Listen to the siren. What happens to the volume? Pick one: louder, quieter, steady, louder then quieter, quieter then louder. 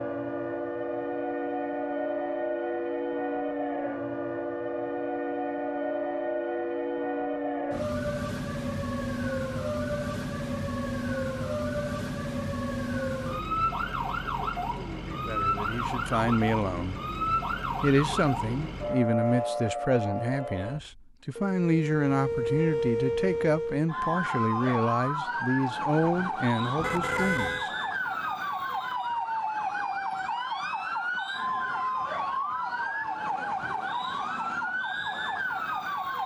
steady.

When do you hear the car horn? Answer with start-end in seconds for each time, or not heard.
26.8-27.7.